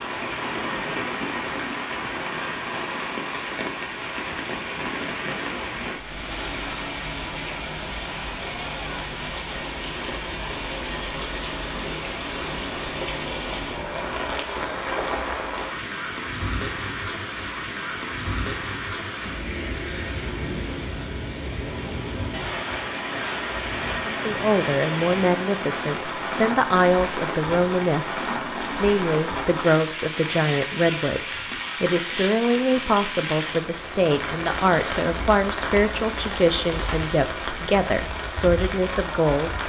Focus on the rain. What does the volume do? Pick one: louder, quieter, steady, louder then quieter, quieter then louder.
steady.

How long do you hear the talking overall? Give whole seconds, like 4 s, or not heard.
15 s.